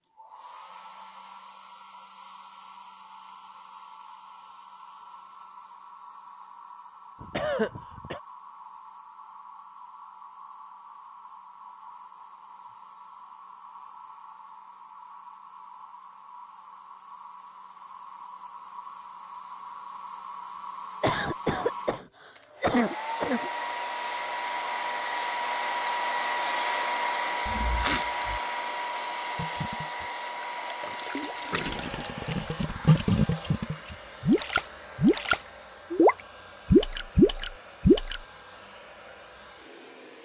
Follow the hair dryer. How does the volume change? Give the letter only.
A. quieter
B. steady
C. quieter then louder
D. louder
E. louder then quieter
E.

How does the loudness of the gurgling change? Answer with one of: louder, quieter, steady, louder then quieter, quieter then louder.
louder.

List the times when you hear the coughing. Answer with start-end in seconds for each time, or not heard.
7.2-8.2, 21.0-23.5, 27.4-28.4.